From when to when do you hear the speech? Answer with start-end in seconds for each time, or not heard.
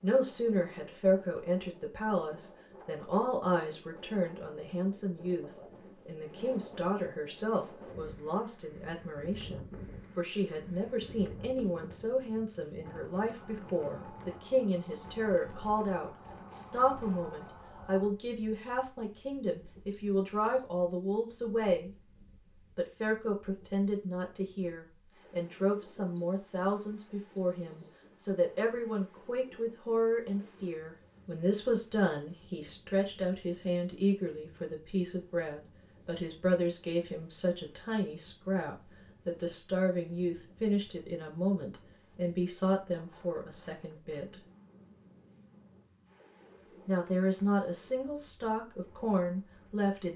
0.0-21.9, 22.6-44.4, 46.9-50.1.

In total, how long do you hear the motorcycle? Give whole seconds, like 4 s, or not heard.
not heard.